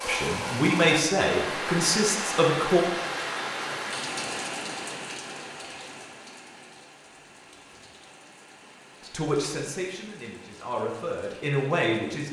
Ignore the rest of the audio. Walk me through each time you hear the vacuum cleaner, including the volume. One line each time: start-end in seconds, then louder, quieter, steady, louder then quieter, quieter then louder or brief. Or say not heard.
not heard.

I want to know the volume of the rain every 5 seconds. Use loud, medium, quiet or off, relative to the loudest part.
loud, quiet, quiet.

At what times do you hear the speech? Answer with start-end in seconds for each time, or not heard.
0.1-2.8, 9.0-12.2.